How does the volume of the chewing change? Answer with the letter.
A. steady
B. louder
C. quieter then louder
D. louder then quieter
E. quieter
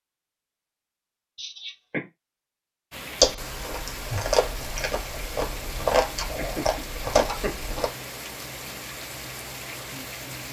C.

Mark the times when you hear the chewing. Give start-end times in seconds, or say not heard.
3.2-7.9.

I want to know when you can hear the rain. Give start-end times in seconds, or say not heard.
2.9-10.4.